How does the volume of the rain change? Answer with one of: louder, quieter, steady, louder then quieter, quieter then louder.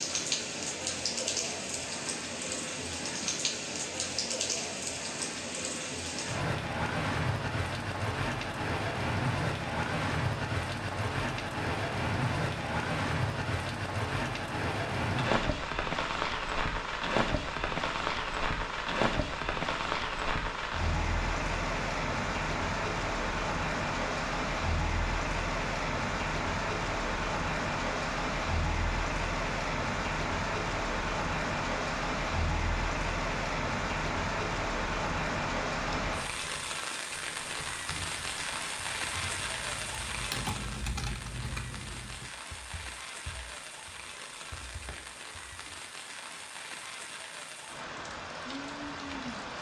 quieter.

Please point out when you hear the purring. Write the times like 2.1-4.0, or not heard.
not heard.